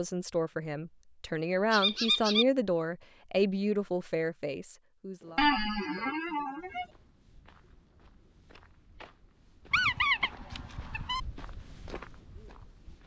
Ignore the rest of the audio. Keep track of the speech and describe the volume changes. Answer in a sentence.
The volume of the speech goes up, then down.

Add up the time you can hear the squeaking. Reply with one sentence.
The squeaking can be heard for 4 seconds in total.